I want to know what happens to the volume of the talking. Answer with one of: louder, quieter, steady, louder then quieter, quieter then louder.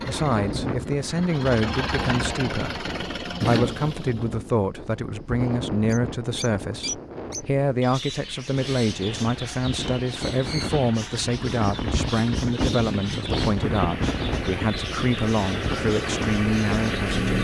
steady.